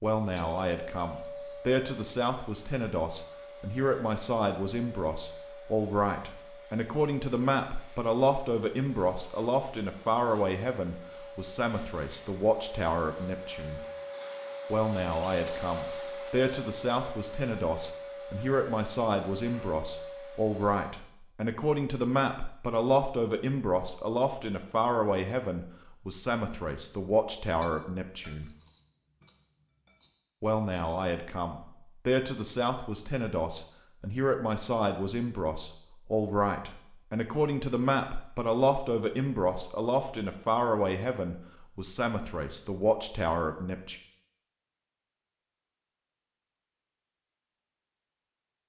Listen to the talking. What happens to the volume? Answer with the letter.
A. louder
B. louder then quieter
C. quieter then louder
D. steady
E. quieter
D.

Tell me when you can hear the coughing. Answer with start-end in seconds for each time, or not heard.
not heard.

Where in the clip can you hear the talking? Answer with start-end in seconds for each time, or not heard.
0.0-13.8, 14.7-28.5, 30.4-44.0.